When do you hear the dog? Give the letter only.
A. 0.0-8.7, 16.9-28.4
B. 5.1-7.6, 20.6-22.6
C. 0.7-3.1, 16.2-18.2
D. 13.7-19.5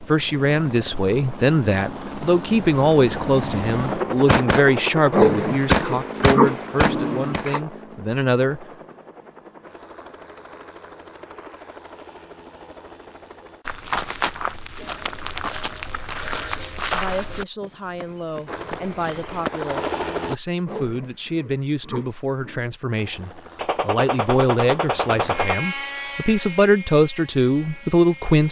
B.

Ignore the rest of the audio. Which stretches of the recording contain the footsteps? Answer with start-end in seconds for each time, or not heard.
13.7-19.5.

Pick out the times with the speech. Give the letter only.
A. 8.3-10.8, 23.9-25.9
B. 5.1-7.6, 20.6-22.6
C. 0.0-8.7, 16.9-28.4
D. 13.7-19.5
C.